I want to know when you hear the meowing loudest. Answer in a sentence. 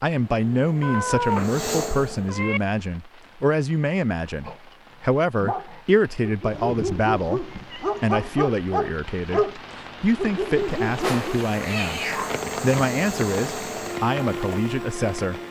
The volume of the meowing peaks at 1 second.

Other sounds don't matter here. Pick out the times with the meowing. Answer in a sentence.
You can hear the meowing from 0.8 to 2.6 s, from 6.5 to 8.1 s and from 11.0 to 12.4 s.